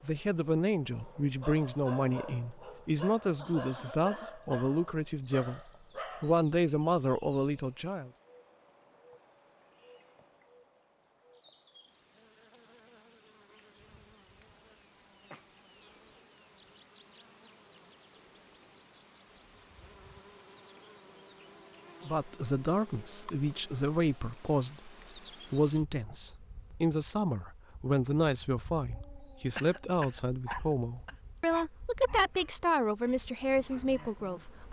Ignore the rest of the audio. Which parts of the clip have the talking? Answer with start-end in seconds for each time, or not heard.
0.0-8.1, 22.1-34.6.